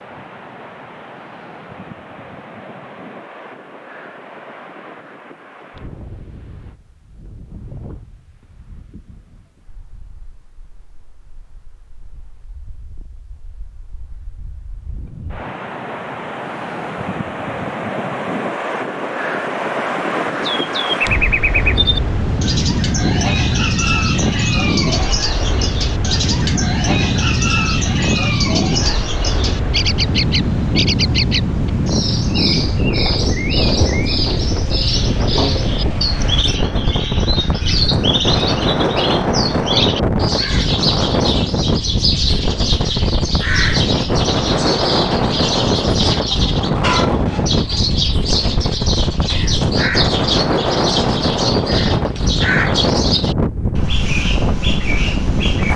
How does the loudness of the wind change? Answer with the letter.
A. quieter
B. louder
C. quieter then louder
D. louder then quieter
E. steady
B.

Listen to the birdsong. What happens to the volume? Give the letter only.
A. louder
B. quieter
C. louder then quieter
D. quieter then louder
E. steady
E.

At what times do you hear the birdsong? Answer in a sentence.
The birdsong can be heard from 20.4 to 55.7 s.